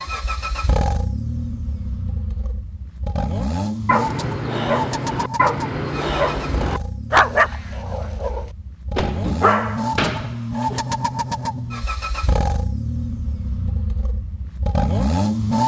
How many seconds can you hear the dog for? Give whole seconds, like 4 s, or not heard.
7 s.